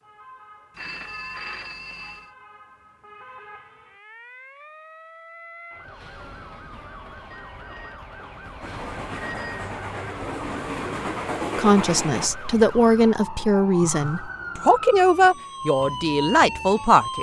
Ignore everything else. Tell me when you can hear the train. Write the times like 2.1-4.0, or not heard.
8.6-12.3.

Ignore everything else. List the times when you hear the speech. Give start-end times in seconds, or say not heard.
11.6-17.1.